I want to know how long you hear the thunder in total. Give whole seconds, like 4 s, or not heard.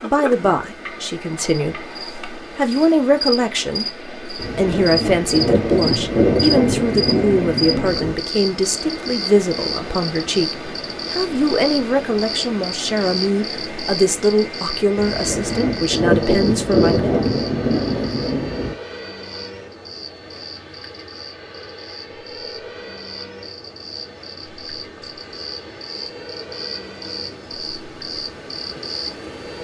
8 s.